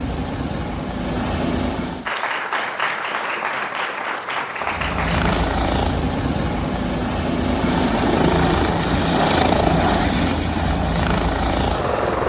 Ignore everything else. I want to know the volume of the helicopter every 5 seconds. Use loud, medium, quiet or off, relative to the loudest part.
medium, loud, loud.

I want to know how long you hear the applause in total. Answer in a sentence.
You can hear the applause for 3 seconds altogether.